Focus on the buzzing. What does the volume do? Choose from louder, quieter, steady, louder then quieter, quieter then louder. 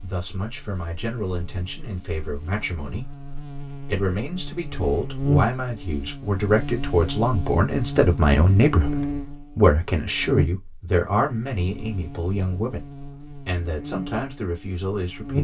louder then quieter.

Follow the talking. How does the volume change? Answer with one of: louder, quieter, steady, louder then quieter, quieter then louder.
louder then quieter.